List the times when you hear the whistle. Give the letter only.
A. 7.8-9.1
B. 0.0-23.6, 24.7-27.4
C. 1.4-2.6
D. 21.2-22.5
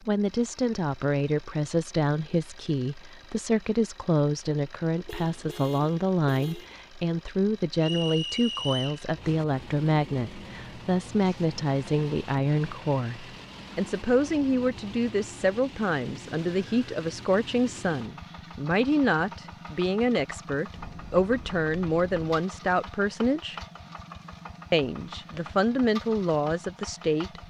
A.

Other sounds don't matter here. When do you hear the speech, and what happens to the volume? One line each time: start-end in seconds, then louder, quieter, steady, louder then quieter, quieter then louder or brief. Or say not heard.
0.0-23.6 steady
24.7-27.4 brief.